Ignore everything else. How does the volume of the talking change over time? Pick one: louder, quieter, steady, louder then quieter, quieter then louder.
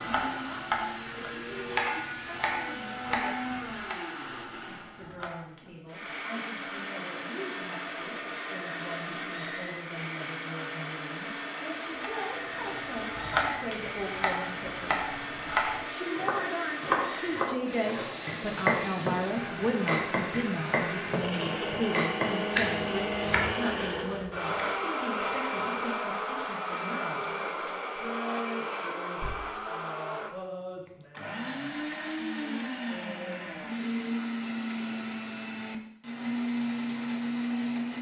louder then quieter.